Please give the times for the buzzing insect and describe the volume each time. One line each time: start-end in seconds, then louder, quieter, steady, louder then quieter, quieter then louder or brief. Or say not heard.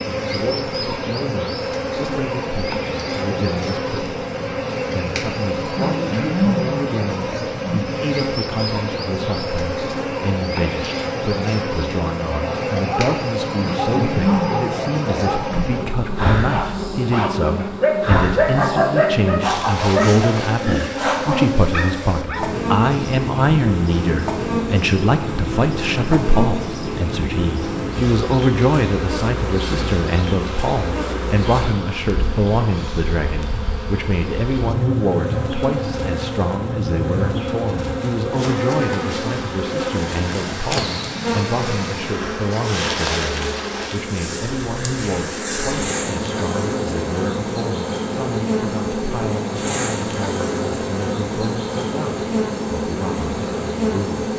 0.0-54.3 steady.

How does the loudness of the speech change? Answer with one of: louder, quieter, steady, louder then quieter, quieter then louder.
louder then quieter.